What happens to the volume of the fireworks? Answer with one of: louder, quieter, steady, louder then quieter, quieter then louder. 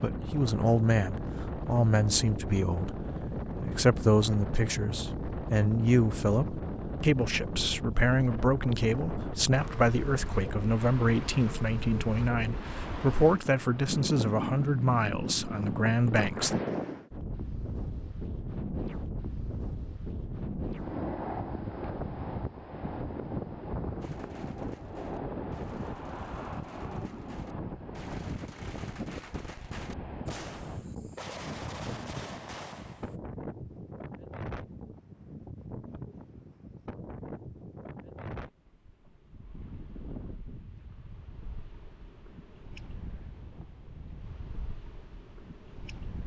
louder.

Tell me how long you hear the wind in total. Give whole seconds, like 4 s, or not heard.
46 s.